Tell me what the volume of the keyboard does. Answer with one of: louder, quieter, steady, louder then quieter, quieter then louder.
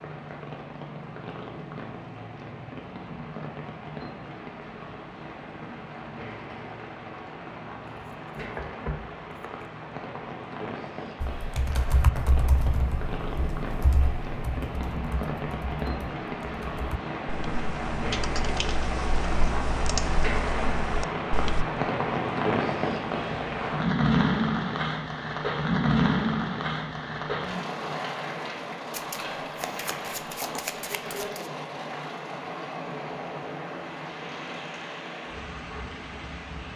quieter then louder.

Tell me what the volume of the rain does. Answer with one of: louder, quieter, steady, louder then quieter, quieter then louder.
louder then quieter.